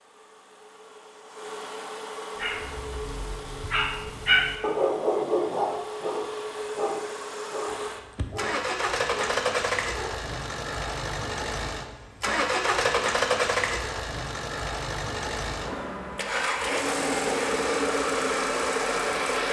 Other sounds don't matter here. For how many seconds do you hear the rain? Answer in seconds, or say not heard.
not heard.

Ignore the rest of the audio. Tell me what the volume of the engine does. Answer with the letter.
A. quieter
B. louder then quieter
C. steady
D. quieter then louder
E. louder
E.